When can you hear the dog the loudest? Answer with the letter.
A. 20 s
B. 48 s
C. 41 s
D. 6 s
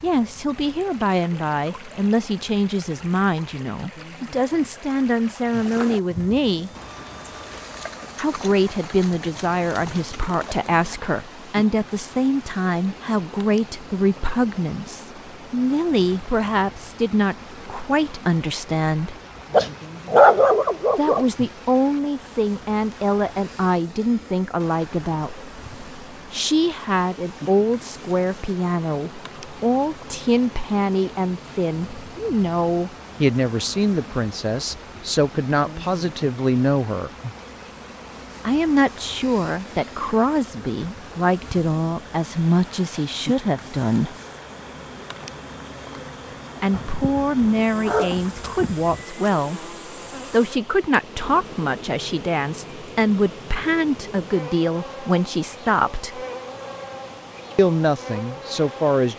A.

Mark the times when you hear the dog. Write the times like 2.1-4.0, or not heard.
19.5-21.2, 46.7-48.9.